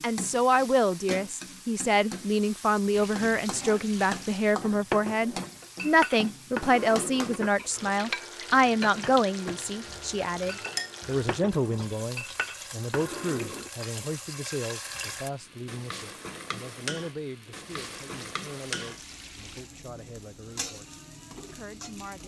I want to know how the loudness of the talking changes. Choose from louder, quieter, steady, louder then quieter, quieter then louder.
quieter.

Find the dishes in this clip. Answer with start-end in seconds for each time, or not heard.
4.8-13.7.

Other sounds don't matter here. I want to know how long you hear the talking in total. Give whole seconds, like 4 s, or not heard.
22 s.